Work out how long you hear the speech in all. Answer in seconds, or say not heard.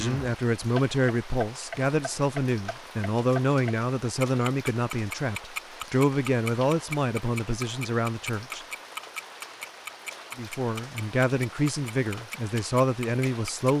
12 s.